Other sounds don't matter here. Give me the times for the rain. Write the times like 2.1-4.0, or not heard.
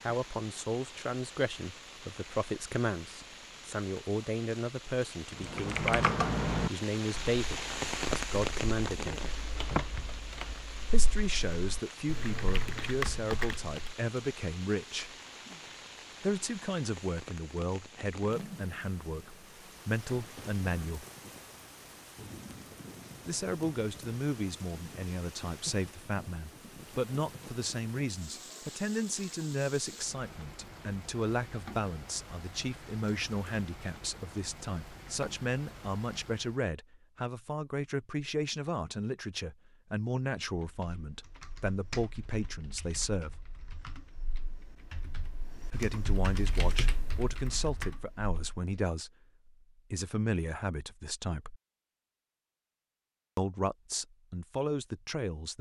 0.0-36.7.